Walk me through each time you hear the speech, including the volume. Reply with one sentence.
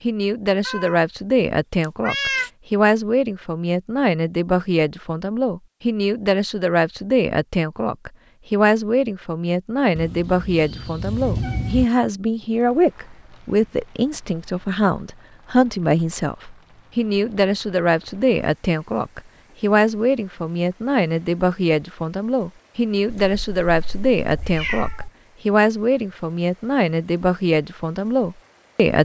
You can hear the speech from 0.0 to 29.0 s, at a steady volume.